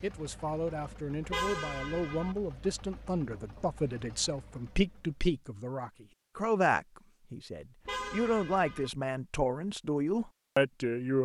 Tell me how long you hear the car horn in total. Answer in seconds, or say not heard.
2 s.